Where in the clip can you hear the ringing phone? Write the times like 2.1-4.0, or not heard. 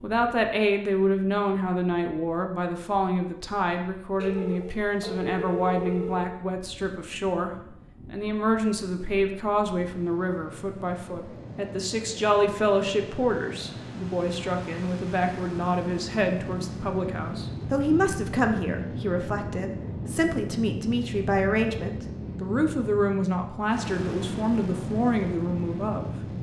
4.2-6.2.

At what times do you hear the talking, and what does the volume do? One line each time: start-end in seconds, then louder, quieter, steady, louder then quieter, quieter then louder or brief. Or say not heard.
0.0-26.1 steady.